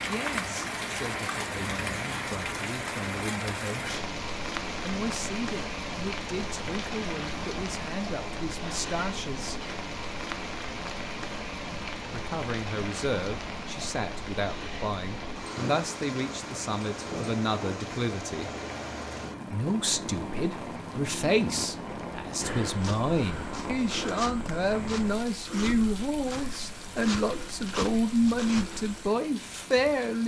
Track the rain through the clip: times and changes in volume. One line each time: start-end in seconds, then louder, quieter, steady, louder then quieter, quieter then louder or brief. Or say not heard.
0.0-30.2 quieter.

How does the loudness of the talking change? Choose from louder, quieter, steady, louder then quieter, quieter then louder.
louder.